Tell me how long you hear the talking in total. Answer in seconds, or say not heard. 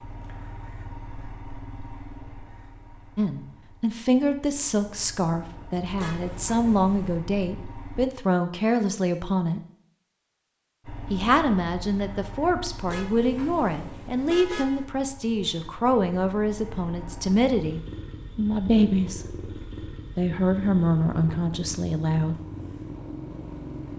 17 s.